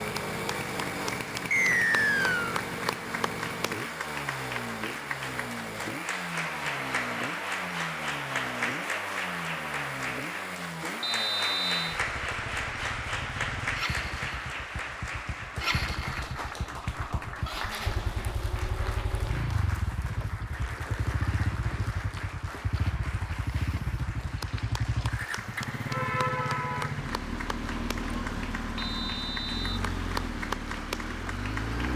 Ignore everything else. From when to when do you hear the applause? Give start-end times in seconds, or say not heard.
0.0-31.9.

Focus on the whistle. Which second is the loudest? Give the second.
2 s.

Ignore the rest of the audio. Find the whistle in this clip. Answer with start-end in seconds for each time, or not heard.
1.5-2.6, 11.0-12.0, 28.8-29.8.